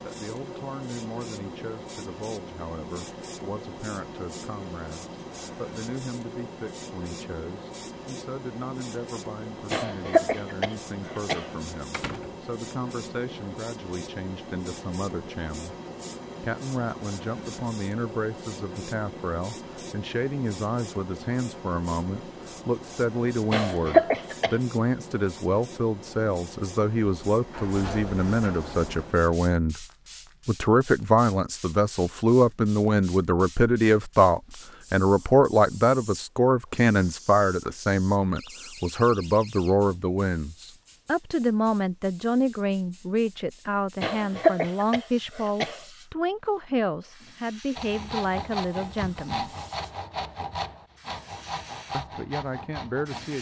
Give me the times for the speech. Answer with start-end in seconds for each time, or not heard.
0.0-15.8, 16.4-29.9, 30.4-49.5, 51.9-53.3.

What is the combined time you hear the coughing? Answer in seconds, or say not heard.
5 s.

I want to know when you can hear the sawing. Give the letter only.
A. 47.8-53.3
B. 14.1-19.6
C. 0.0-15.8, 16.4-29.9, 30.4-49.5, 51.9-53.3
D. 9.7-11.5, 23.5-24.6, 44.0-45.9
A.